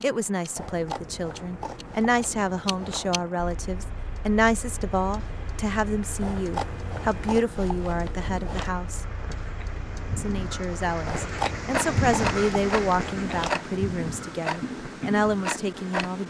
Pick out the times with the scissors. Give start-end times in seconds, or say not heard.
0.6-3.4, 6.2-8.7, 11.1-13.6.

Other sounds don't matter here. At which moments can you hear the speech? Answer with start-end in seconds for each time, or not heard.
0.0-9.1, 10.2-16.2.